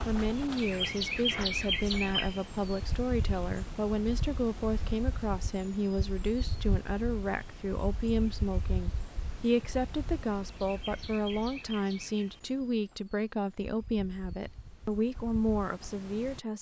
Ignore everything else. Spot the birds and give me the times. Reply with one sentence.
You can hear the birds from 0.0 to 16.4 s.